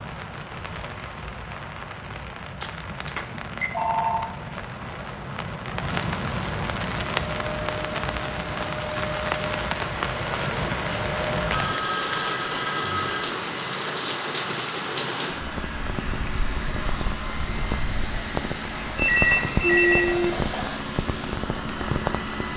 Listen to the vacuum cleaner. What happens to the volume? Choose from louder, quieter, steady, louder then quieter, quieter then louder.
steady.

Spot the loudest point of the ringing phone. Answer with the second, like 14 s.
20 s.